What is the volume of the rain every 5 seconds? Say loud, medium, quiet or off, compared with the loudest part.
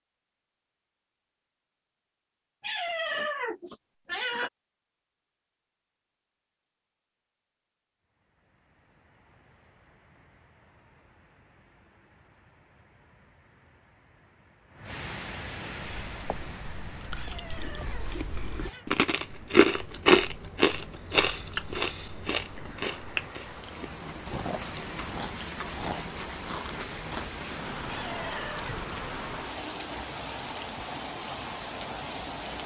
off, quiet, quiet, medium, medium, loud, loud.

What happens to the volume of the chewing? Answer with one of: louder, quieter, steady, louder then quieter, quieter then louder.
louder then quieter.